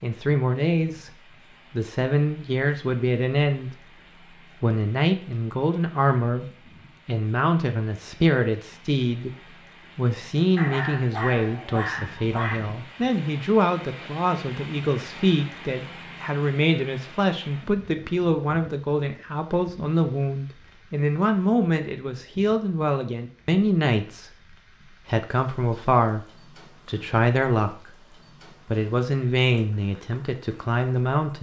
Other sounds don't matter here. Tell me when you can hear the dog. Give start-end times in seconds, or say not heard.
10.6-12.6.